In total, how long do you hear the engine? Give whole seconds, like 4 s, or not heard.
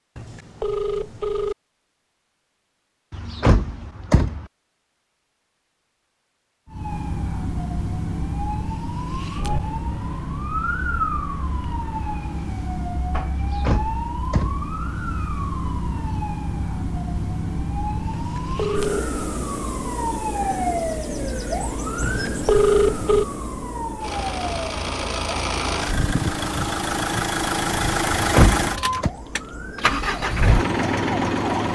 8 s.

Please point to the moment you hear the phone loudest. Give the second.
23 s.